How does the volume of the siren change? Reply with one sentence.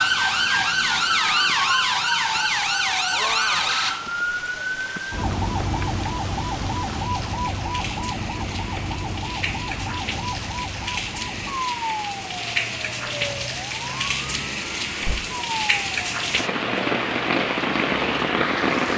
The loudness of the siren goes down.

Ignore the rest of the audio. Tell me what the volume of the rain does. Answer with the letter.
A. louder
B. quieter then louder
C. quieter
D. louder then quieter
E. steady
A.